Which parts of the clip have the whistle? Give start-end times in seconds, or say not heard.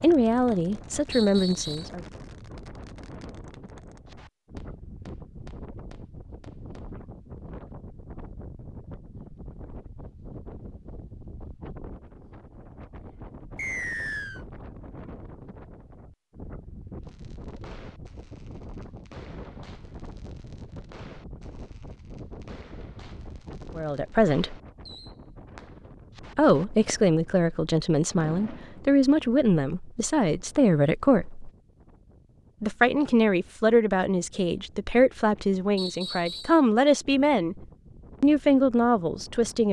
1.1-1.9, 13.6-14.4, 35.8-36.6.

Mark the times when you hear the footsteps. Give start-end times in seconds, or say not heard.
not heard.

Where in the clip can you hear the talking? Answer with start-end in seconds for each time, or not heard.
0.0-2.0, 23.8-24.6, 26.4-31.4, 32.6-37.6, 38.2-39.6.